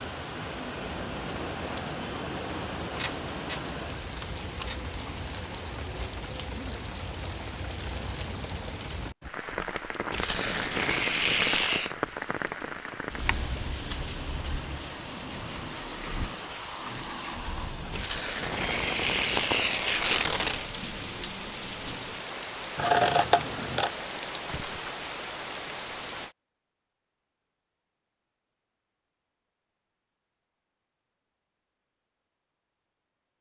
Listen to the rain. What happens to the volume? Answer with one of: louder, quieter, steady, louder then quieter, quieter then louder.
steady.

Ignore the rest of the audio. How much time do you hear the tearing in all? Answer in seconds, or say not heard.
5 s.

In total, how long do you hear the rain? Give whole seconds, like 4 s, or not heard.
26 s.